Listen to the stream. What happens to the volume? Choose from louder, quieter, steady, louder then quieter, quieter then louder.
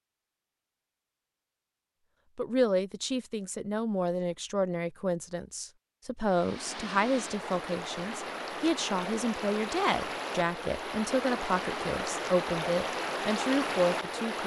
louder.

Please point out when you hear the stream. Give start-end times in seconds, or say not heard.
6.2-14.4.